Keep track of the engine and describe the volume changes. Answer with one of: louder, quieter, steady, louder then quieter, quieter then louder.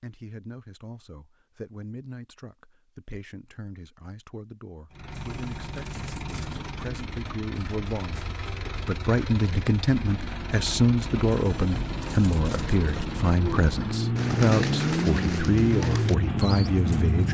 louder.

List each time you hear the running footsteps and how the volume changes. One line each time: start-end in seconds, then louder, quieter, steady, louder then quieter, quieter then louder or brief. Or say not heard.
not heard.